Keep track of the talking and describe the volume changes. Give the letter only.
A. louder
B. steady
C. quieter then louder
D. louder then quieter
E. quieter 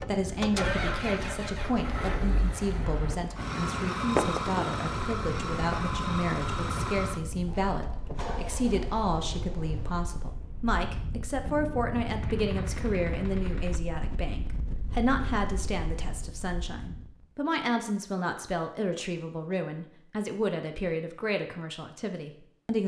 B.